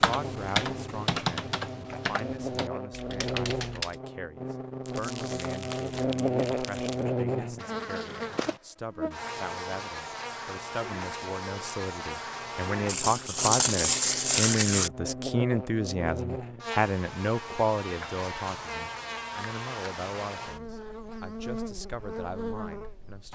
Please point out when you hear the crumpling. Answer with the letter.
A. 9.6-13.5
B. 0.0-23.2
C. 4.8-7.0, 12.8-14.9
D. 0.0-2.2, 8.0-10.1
C.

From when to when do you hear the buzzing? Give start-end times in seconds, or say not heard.
0.1-23.2.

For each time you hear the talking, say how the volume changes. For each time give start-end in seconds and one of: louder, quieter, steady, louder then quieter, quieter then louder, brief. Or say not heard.
0.0-23.2 louder then quieter.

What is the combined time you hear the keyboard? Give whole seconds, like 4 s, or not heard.
4 s.